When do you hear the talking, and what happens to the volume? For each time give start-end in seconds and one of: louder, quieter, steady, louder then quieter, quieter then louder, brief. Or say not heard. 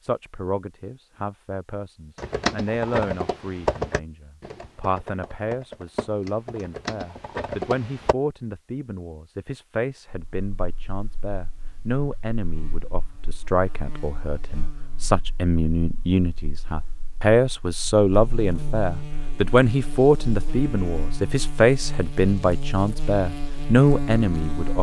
0.0-24.7 louder.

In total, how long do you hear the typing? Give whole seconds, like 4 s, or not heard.
6 s.